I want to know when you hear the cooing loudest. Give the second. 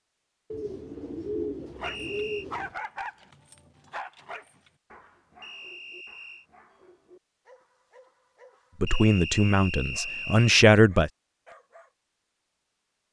1 s.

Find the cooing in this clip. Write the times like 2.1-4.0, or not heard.
0.5-2.8.